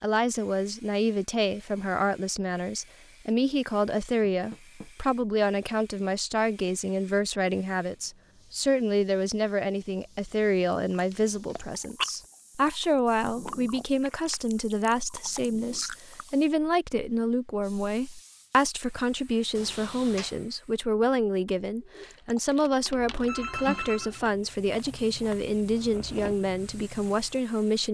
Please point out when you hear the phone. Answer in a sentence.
The phone can be heard from 22.9 to 24.2 s.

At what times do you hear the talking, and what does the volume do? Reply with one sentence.
You can hear the talking from 0.0 to 27.8 s, at a steady volume.